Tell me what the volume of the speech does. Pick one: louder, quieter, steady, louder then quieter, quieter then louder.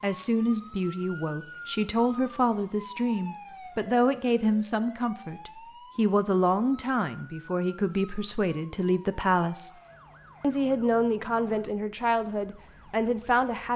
steady.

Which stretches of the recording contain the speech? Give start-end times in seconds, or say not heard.
0.0-9.7, 10.4-13.7.